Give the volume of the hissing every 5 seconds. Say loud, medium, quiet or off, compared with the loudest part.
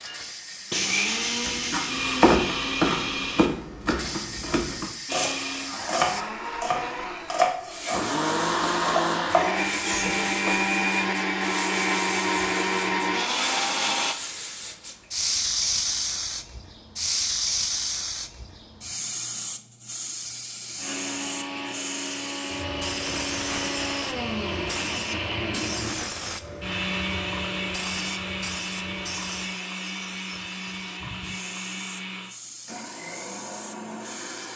medium, medium, medium, loud, medium, medium, quiet.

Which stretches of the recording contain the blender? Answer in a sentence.
The blender can be heard from 0.0 to 3.5 s, from 5.0 to 14.2 s and from 20.2 to 34.5 s.